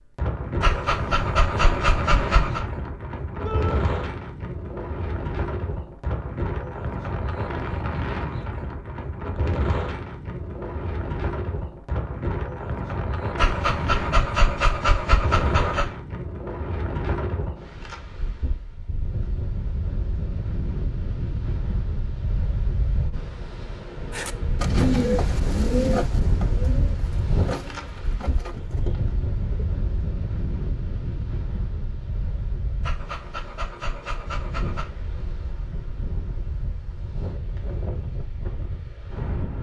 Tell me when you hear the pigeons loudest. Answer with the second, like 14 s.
25 s.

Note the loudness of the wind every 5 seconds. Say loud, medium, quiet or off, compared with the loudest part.
loud, loud, loud, loud, loud, loud, medium, medium.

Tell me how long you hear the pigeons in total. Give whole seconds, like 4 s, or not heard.
6 s.